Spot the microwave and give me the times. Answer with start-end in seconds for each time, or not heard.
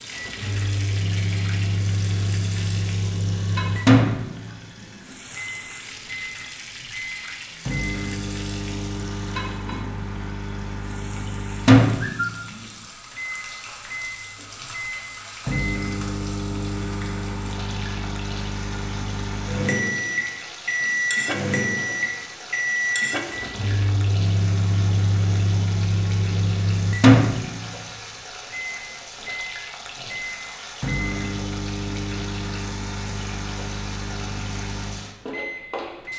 0.1-36.1.